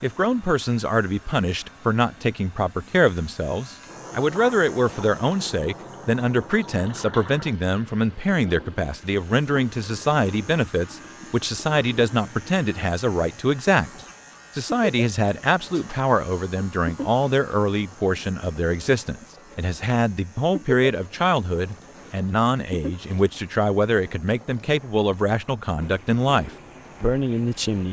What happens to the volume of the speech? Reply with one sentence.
The loudness of the speech stays about the same.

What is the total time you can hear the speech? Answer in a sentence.
The speech can be heard for 27 seconds in total.